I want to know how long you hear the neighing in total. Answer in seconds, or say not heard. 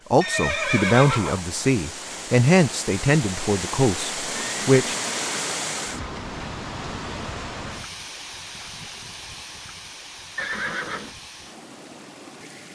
4 s.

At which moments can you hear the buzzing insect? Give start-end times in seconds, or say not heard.
not heard.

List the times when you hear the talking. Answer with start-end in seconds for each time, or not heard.
0.1-5.0.